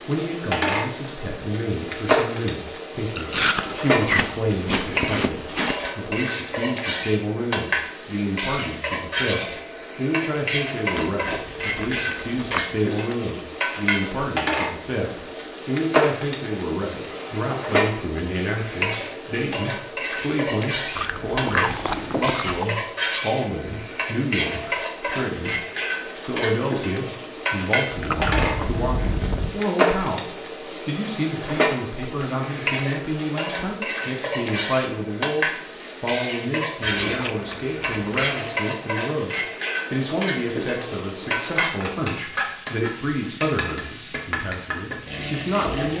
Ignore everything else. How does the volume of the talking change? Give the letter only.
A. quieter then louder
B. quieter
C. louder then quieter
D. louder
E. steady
E.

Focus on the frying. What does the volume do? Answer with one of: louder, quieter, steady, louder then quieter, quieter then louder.
steady.